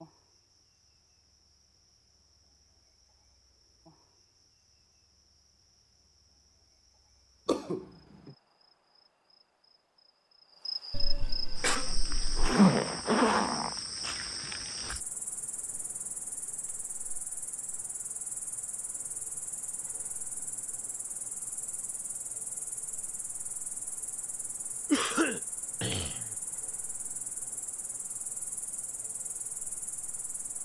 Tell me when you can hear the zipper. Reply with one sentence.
The zipper can be heard from 12.3 to 13.8 s.